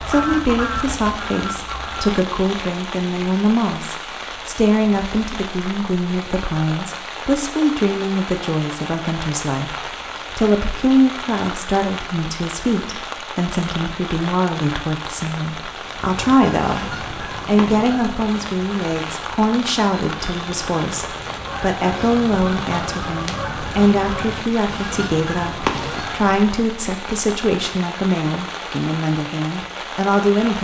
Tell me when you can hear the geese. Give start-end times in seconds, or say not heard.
0.0-2.1, 15.8-26.6.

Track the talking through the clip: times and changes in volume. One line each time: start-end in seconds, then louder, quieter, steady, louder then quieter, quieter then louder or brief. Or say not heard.
0.1-30.6 steady.